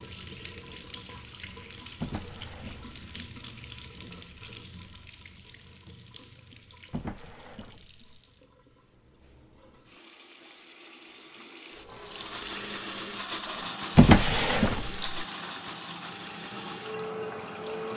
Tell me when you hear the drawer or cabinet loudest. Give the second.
14 s.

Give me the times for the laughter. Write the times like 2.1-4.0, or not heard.
not heard.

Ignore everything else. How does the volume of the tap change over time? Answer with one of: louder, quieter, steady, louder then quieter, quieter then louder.
quieter then louder.